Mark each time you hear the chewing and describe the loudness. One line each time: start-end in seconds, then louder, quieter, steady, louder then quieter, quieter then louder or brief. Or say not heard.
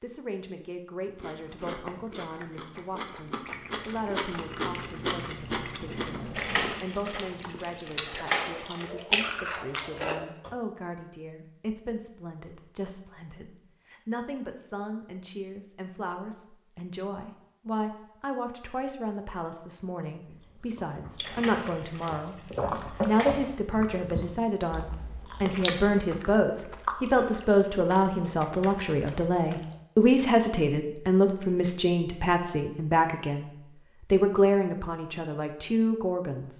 1.1-10.5 louder
20.2-29.9 louder then quieter.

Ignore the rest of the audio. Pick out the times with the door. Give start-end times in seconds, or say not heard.
6.3-8.9, 21.2-23.6.